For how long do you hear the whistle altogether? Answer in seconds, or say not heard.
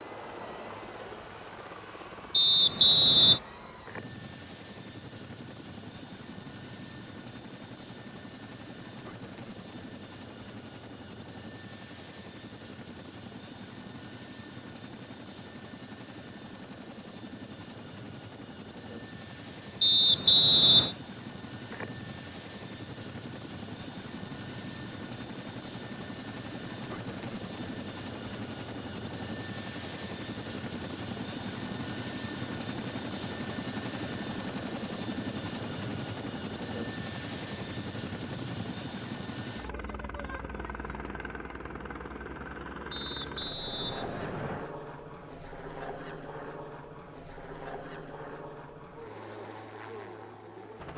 4 s.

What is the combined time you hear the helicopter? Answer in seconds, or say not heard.
51 s.